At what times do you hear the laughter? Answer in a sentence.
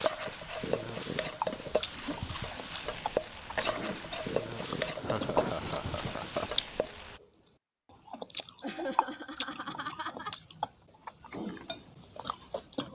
The laughter can be heard from 1.5 to 2.1 s, from 5.0 to 6.5 s and from 8.6 to 10.3 s.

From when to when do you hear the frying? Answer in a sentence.
You can hear the frying from 0.0 to 7.2 s.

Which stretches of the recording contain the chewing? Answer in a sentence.
You can hear the chewing from 1.4 to 12.8 s.